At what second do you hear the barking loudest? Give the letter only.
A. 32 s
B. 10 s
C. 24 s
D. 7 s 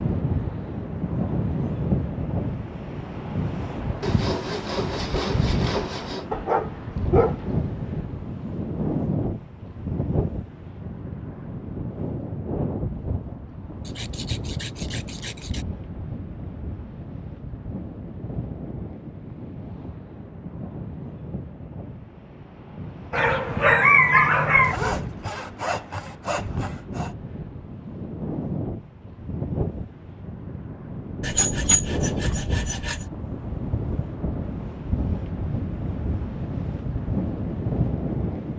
C.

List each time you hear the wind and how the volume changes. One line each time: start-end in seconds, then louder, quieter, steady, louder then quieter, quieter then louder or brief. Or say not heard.
0.0-38.5 quieter then louder.